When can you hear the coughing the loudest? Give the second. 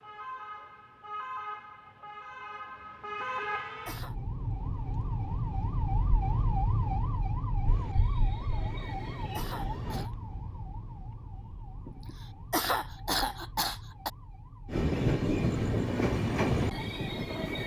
13 s.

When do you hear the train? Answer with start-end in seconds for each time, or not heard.
7.6-10.1, 14.7-17.6.